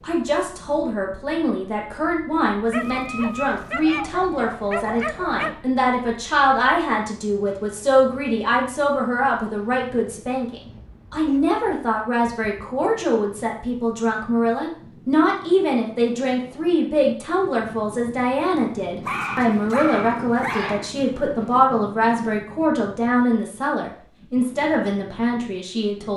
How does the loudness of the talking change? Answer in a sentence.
The volume of the talking stays about the same.